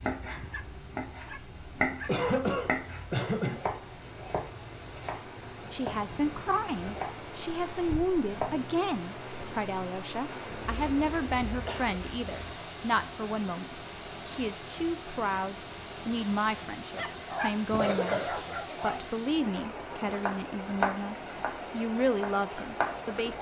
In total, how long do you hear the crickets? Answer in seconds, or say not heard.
19 s.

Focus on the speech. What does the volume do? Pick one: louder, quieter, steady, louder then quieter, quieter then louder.
steady.